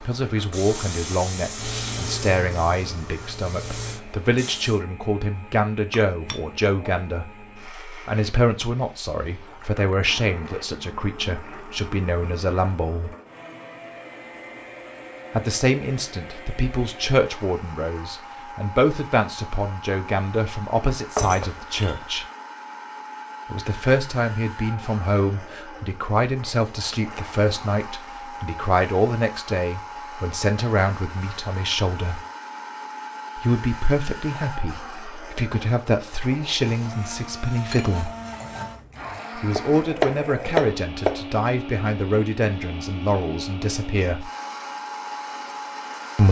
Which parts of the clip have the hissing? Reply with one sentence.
You can hear the hissing from 0.0 to 4.8 s.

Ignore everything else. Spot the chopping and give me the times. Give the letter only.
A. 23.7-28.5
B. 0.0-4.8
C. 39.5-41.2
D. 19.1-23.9
C.